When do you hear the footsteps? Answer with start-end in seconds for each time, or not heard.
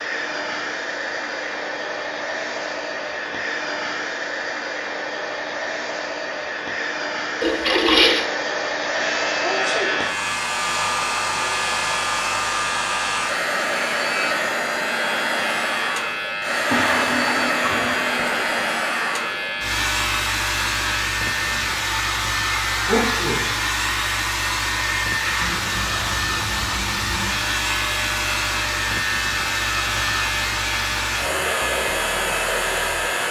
not heard.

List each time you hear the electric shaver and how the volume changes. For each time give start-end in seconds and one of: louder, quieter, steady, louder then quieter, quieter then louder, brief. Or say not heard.
8.8-33.2 steady.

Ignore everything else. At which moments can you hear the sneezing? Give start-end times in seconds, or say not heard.
9.4-10.0, 22.9-23.5.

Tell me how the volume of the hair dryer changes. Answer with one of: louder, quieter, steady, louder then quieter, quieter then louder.
steady.